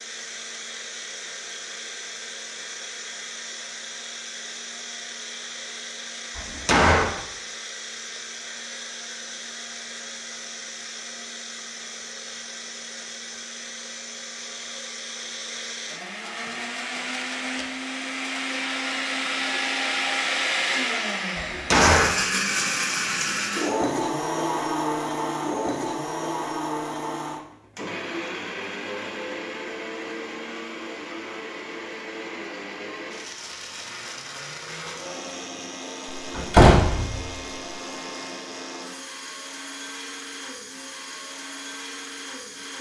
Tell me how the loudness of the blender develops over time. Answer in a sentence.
The loudness of the blender goes up, then down.